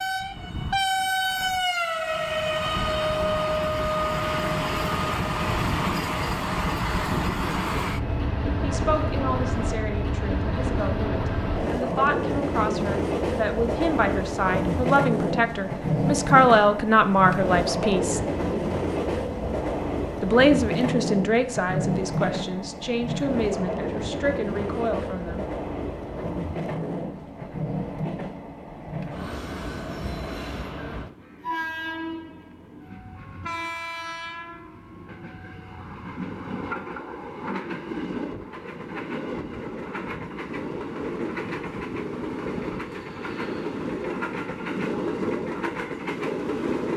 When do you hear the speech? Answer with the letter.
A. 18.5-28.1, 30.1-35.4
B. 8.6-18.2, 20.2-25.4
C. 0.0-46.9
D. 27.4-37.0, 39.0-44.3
B.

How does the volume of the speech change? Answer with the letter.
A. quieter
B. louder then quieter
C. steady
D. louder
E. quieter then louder
B.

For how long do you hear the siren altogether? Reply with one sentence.
You can't hear the siren here.